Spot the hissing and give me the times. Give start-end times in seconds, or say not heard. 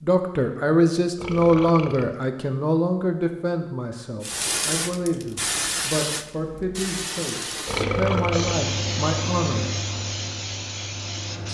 4.2-11.4.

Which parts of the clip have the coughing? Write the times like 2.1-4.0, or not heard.
not heard.